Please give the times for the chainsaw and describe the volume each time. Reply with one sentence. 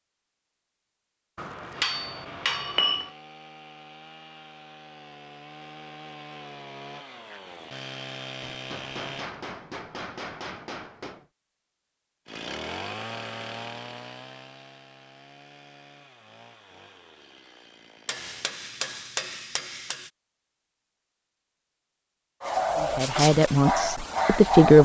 You can hear the chainsaw from 1.9 to 9.3 s, getting louder; and from 12.2 to 18.5 s, getting quieter.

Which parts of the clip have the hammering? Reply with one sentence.
You can hear the hammering from 1.4 to 3.1 s, from 8.5 to 11.2 s and from 18.1 to 20.1 s.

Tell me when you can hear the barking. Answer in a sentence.
You can hear the barking from 22.4 to 24.8 s.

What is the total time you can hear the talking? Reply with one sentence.
The talking can be heard for 2 seconds in total.